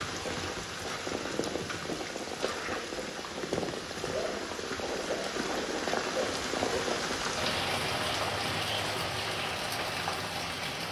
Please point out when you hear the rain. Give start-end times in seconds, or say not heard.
0.0-10.8.